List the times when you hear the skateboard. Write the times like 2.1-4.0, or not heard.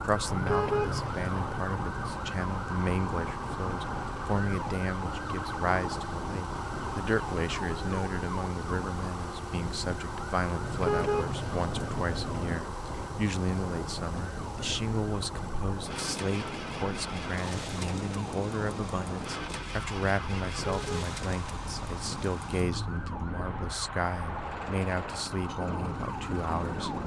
not heard.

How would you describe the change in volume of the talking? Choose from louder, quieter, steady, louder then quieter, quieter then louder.
steady.